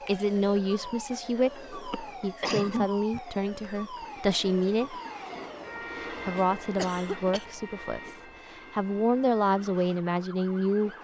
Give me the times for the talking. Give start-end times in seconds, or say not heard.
0.1-5.0, 6.0-10.9.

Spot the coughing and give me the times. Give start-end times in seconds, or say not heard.
1.9-3.2, 6.8-7.5.